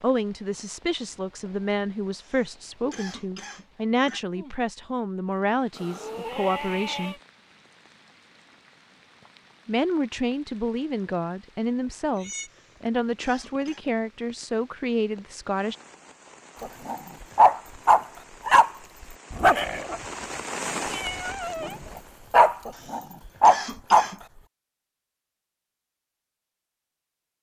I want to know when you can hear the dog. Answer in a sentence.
The dog can be heard from 16.6 to 18.7 s and from 19.3 to 24.1 s.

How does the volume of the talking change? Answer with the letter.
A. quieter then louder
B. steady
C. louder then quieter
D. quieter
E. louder
B.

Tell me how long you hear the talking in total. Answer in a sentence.
The talking can be heard for 13 seconds in total.